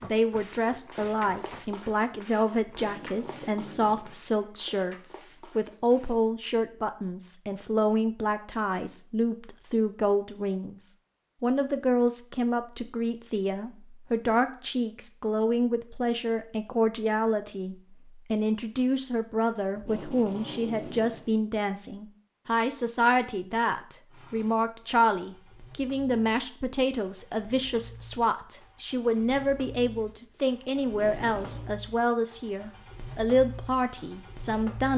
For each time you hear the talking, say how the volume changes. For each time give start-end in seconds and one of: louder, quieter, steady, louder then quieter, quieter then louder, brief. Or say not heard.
0.0-34.9 steady.